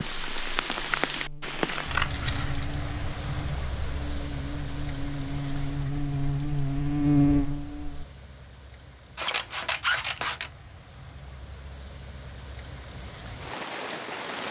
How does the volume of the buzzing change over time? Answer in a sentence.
The loudness of the buzzing goes up.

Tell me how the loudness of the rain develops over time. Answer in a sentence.
The loudness of the rain goes down, then up.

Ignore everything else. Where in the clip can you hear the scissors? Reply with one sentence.
You can hear the scissors from 1.9 to 2.6 s and from 9.2 to 10.5 s.